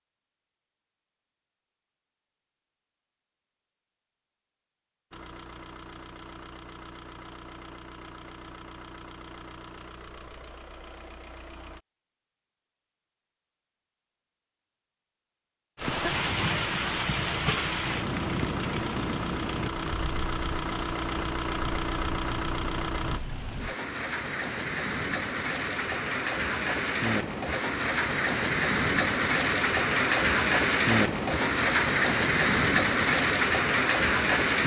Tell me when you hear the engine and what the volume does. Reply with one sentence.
The engine can be heard from 5.1 to 11.8 s, at a steady volume; and from 15.8 to 23.2 s, getting louder.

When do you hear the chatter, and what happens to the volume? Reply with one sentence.
You can't hear the chatter here.